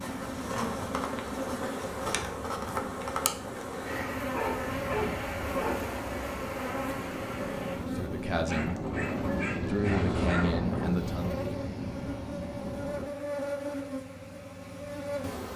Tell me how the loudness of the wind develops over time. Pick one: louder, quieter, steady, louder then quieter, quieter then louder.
louder.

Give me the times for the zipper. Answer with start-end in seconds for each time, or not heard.
not heard.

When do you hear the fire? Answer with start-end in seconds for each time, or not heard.
not heard.